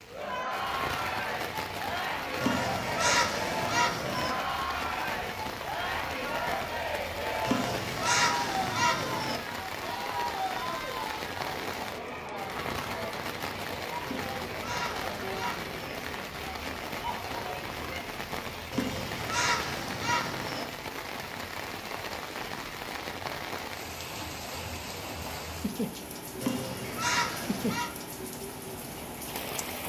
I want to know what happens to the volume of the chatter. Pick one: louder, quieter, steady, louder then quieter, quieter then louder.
quieter.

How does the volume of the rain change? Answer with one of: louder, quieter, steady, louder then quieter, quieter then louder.
steady.